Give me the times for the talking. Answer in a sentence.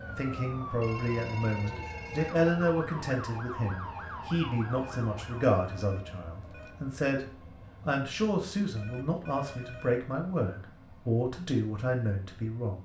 The talking can be heard from 0.1 to 7.2 s and from 7.8 to 12.7 s.